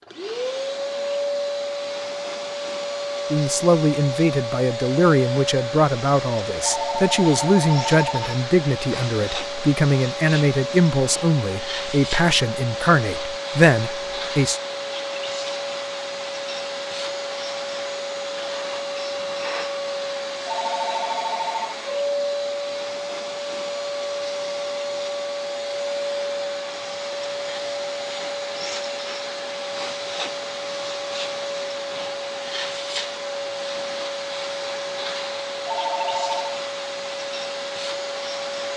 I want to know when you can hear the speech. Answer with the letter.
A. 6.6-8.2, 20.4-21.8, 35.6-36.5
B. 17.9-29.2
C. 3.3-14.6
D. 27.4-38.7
C.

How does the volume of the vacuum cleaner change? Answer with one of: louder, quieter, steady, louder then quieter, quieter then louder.
steady.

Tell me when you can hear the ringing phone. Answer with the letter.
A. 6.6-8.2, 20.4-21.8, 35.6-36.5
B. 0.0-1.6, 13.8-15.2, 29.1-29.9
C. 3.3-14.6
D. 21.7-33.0
A.